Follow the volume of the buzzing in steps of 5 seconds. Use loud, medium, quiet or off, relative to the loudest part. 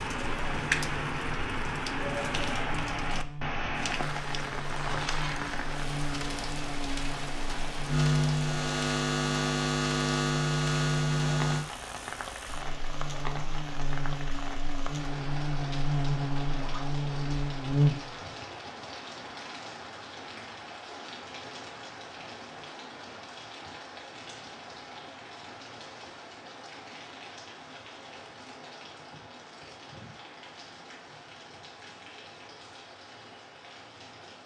quiet, loud, loud, loud, off, off, off.